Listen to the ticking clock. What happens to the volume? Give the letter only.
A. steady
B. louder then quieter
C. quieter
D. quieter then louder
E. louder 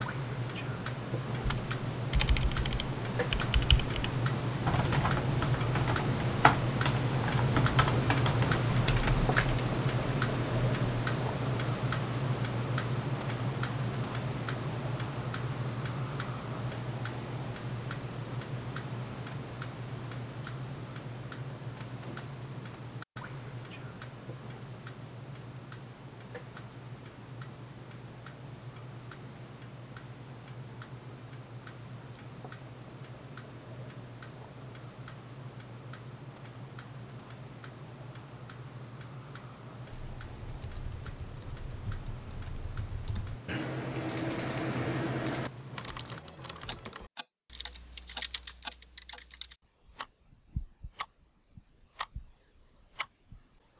C.